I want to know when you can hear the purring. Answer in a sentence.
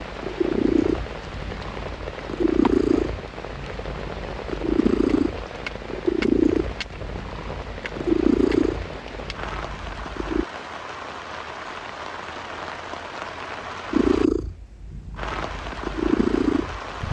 The purring can be heard from 0.0 to 10.4 s and from 13.9 to 17.0 s.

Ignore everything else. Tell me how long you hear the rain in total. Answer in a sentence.
The rain can be heard for 17 seconds in total.